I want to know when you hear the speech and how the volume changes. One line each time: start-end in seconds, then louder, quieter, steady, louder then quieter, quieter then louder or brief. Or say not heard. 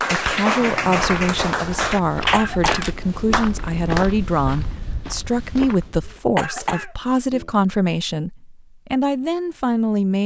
0.1-10.2 steady.